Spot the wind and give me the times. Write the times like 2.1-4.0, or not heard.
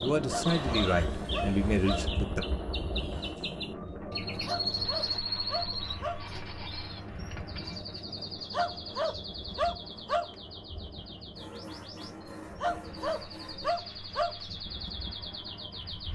0.0-16.1.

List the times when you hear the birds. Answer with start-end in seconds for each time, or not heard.
0.0-16.1.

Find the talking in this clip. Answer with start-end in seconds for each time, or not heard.
0.0-2.5.